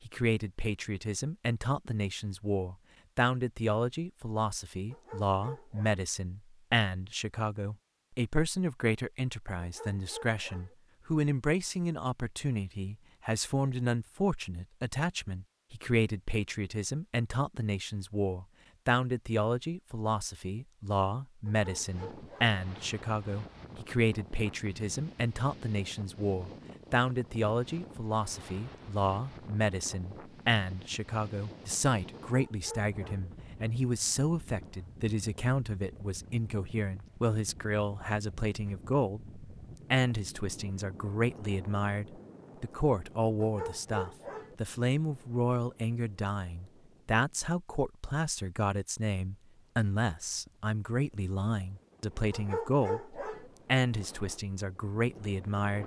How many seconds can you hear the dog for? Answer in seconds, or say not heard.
7 s.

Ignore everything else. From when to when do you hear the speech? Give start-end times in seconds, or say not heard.
0.1-55.8.